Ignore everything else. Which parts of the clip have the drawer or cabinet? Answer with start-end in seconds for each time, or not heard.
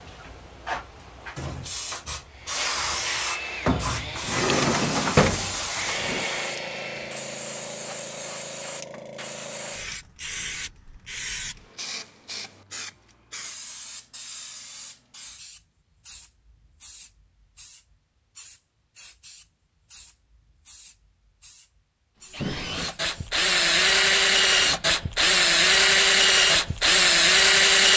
4.2-6.2.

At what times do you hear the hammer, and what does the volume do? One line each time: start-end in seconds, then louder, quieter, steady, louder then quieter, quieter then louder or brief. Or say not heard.
not heard.